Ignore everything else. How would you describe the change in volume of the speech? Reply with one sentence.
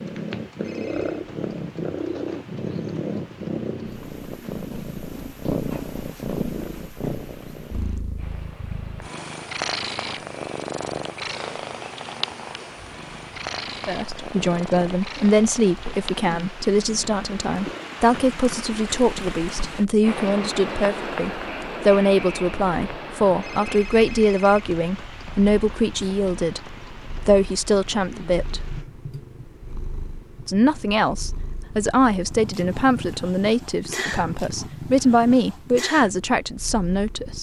The volume of the speech stays about the same.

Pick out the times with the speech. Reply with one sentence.
You can hear the speech from 13.8 to 28.6 s and from 30.4 to 37.3 s.